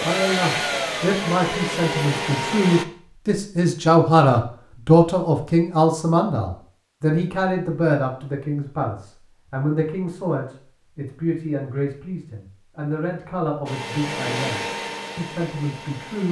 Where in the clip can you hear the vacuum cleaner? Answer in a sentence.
You can hear the vacuum cleaner from 0.0 to 2.9 s and from 13.7 to 16.2 s.